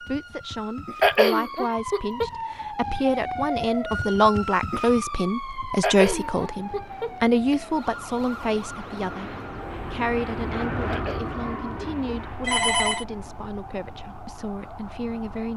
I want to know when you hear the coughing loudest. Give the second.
1 s.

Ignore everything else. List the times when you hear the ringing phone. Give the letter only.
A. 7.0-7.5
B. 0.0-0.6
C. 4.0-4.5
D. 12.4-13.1
D.